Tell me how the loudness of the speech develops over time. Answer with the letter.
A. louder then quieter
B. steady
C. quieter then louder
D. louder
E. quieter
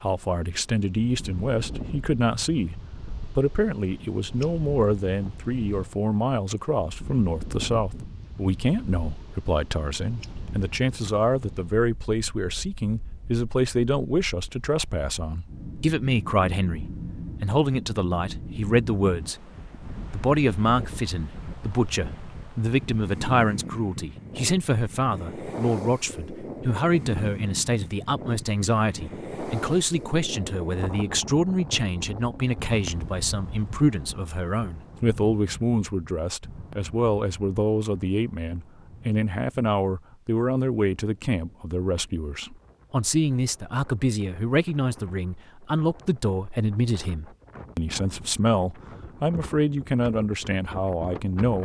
B.